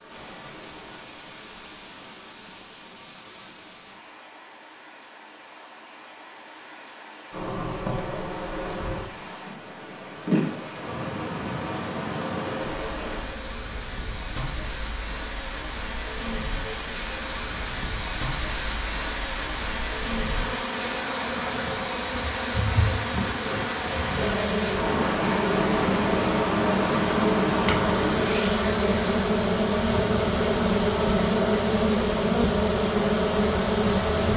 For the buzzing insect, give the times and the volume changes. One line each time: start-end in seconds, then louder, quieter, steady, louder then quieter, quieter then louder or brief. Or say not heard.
7.3-34.3 quieter then louder.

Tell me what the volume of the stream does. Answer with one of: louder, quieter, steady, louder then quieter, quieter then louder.
louder.